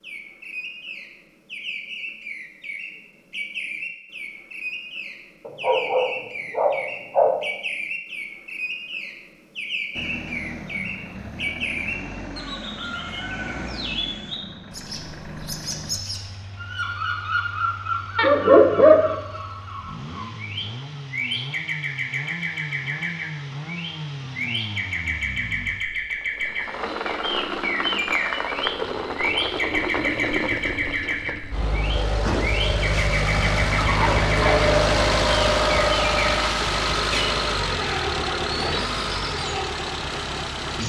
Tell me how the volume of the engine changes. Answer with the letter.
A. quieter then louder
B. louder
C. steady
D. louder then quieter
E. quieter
B.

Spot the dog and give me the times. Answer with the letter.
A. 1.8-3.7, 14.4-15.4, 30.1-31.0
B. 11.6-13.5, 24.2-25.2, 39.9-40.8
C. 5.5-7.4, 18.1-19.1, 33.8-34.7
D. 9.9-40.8
C.